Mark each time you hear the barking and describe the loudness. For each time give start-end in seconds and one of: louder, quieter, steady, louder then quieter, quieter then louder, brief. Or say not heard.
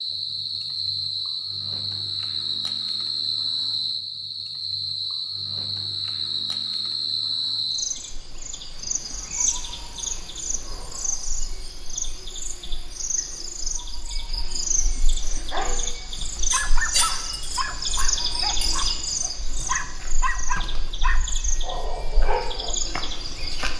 15.2-22.8 quieter then louder.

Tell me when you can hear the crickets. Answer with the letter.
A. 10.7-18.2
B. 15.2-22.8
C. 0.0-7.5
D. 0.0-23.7
D.